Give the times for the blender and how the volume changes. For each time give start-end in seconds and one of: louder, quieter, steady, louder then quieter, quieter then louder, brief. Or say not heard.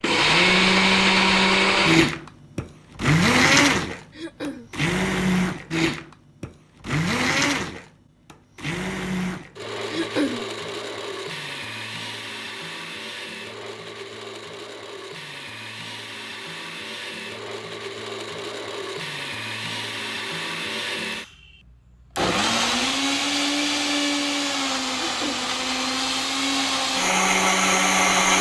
0.0-28.3 quieter then louder.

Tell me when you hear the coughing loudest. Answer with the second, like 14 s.
10 s.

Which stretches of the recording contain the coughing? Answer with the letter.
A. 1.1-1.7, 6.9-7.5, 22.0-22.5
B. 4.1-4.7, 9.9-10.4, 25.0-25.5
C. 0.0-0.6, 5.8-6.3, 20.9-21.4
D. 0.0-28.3
B.